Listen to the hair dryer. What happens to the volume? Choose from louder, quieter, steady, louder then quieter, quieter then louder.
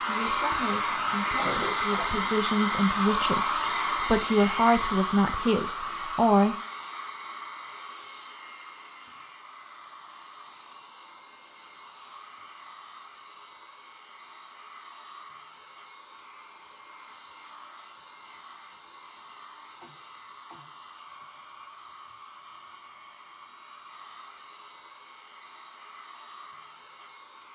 quieter.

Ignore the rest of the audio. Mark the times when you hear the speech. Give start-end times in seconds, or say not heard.
0.0-6.5.